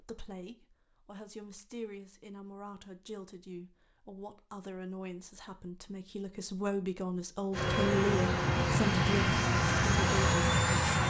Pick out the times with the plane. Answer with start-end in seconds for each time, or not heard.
7.5-11.0.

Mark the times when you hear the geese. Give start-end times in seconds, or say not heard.
not heard.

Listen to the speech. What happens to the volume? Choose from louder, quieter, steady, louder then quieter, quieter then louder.
louder.